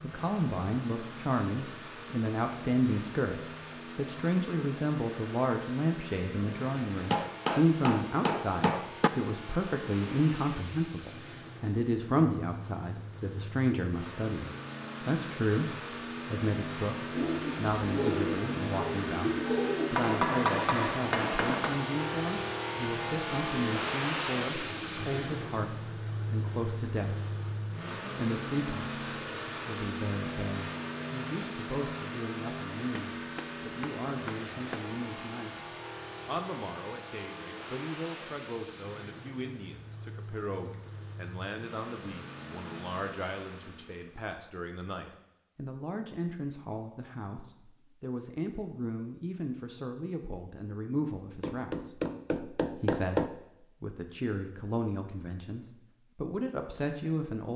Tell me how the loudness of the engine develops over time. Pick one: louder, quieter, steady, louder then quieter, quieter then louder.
louder then quieter.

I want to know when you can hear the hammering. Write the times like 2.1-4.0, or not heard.
7.1-9.1, 19.9-21.9, 33.1-34.8, 51.4-53.3.